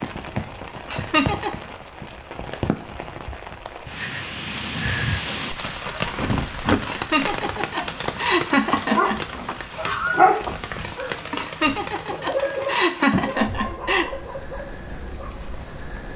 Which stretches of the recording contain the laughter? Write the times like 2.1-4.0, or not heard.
0.8-1.5, 6.8-9.2, 11.3-14.1.